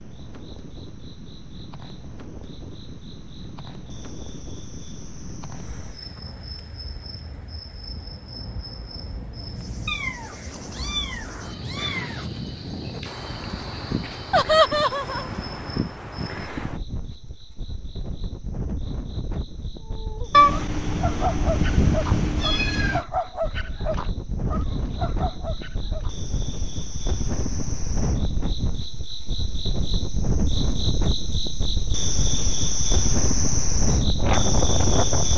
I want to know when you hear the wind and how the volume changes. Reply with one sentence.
You can hear the wind from 0.0 to 35.3 s, getting louder.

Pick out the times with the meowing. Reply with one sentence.
The meowing can be heard from 9.8 to 12.4 s and from 20.3 to 23.0 s.